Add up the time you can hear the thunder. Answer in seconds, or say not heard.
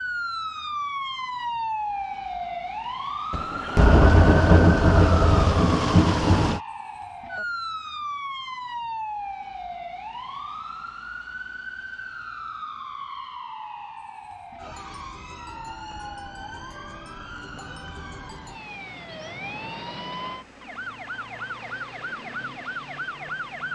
3 s.